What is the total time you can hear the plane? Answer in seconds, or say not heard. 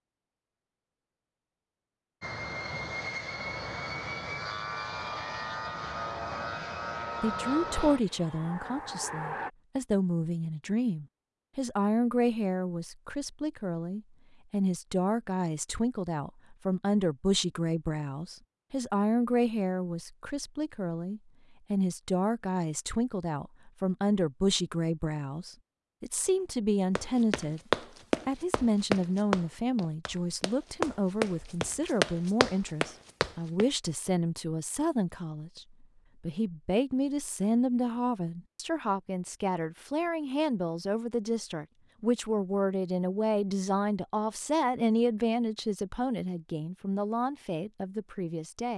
7 s.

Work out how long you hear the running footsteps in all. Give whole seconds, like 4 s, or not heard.
7 s.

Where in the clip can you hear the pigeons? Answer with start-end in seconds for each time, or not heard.
not heard.